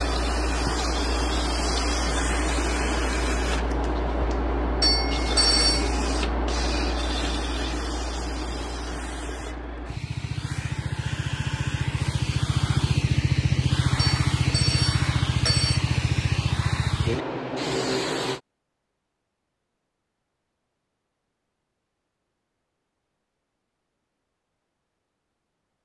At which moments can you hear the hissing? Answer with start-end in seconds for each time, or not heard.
0.0-18.4.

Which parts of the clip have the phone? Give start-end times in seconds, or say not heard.
4.8-6.0, 13.9-15.8.